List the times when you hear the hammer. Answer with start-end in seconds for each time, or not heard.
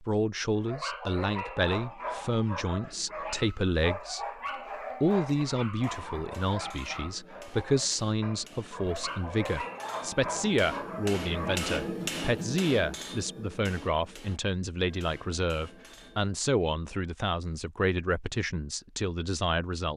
5.8-16.4.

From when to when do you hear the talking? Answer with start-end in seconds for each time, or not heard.
0.0-4.2, 5.0-19.9.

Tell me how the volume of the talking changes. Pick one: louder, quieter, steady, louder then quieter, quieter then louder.
steady.